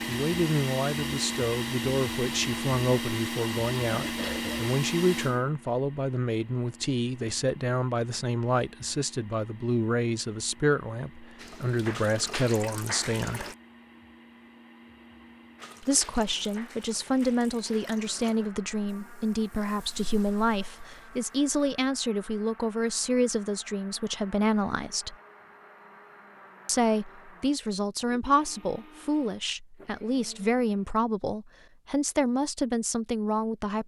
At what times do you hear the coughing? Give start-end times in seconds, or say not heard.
3.9-4.7.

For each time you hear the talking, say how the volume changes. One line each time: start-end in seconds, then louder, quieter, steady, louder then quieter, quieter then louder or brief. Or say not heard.
0.1-13.5 steady
15.8-25.1 steady
26.6-33.8 steady.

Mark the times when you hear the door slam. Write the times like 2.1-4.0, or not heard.
not heard.